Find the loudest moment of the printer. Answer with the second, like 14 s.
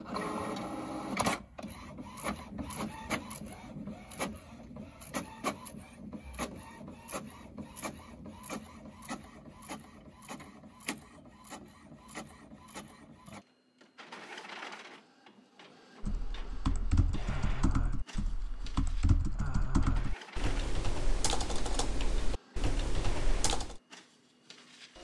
1 s.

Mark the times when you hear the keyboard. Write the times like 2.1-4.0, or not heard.
16.0-23.8.